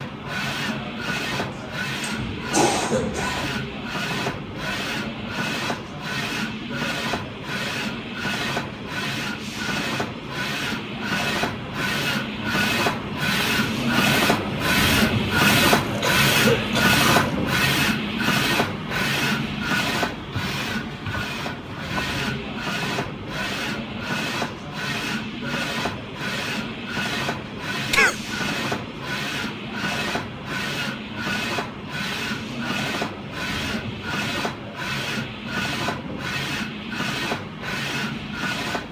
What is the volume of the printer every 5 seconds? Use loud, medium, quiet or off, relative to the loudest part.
medium, medium, loud, loud, medium, medium, medium, medium.